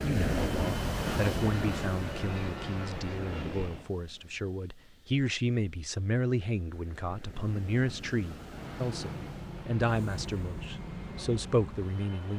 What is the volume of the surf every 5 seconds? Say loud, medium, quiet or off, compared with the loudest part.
loud, quiet, quiet.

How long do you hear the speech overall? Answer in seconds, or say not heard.
12 s.